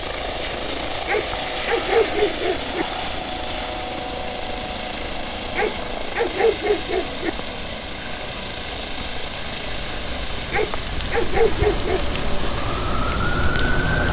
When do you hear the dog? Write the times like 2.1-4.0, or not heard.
1.1-2.9, 5.5-7.3, 10.5-12.1.